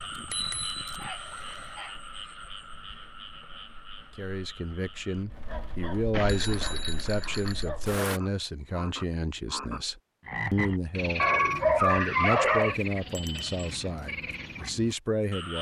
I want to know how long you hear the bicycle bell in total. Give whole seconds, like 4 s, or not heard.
4 s.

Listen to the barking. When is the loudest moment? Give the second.
12 s.